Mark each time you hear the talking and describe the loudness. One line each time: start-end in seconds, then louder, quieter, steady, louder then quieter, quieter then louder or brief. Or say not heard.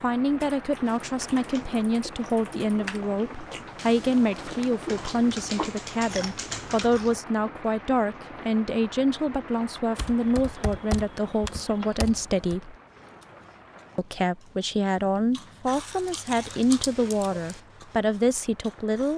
0.0-12.8 steady
13.9-19.1 steady.